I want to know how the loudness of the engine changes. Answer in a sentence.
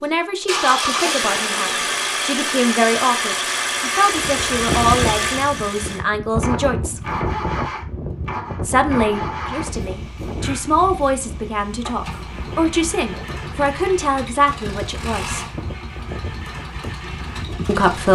The loudness of the engine goes down.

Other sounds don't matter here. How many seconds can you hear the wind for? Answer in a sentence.
The wind can be heard for 14 seconds in total.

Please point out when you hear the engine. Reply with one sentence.
The engine can be heard from 0.0 to 18.1 s.